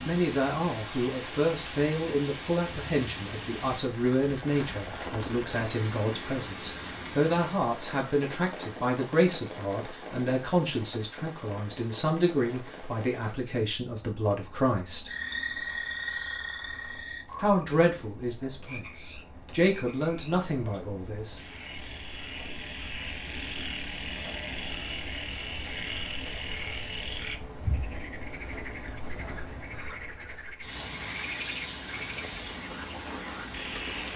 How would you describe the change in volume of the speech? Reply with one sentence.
The volume of the speech stays about the same.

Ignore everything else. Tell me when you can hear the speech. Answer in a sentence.
The speech can be heard from 0.0 to 15.1 s and from 17.4 to 21.4 s.